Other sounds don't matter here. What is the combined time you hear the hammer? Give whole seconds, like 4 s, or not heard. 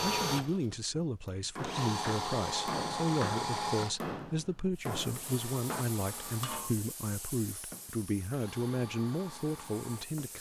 5 s.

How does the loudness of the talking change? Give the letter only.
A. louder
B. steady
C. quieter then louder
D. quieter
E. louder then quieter
B.